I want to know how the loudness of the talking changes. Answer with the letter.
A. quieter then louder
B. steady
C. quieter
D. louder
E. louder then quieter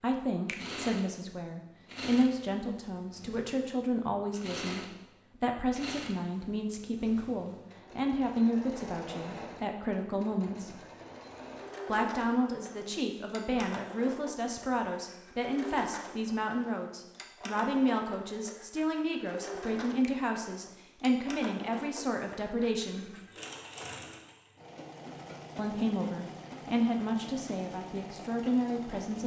B.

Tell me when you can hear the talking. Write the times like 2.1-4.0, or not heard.
0.0-10.8, 11.8-23.2, 25.6-29.2.